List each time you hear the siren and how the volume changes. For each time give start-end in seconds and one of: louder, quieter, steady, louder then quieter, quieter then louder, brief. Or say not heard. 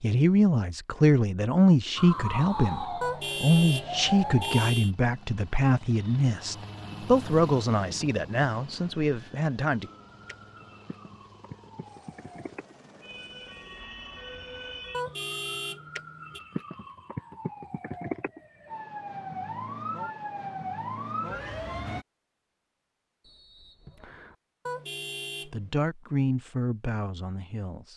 1.9-4.7 brief
9.8-22.1 louder.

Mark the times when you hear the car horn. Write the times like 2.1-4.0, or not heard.
3.0-4.9, 14.9-16.4, 24.6-25.8.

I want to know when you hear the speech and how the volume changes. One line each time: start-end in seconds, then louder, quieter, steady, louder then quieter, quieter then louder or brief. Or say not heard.
0.0-9.9 quieter
25.4-27.9 brief.